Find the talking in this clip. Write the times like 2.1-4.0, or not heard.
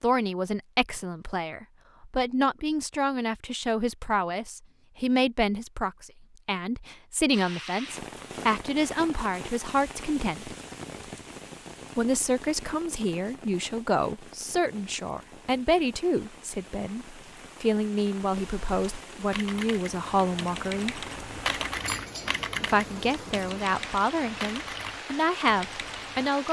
0.0-10.6, 11.9-21.1, 22.6-26.4.